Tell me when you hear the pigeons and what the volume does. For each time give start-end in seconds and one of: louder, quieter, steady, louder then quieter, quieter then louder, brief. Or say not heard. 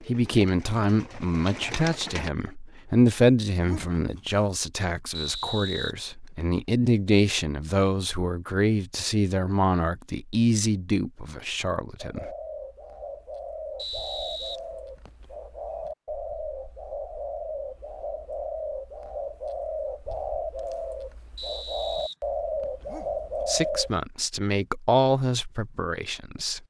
0.0-2.3 brief
11.9-23.9 louder.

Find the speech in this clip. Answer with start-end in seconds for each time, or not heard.
0.1-12.2, 23.4-26.6.